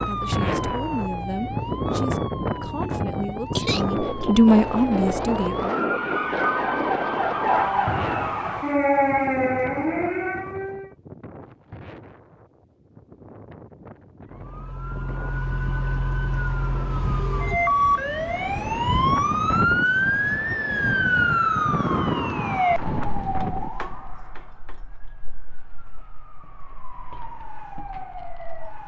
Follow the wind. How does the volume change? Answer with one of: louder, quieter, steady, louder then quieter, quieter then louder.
quieter then louder.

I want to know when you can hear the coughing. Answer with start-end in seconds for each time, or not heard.
3.5-4.2.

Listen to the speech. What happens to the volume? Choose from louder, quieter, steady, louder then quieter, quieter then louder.
louder.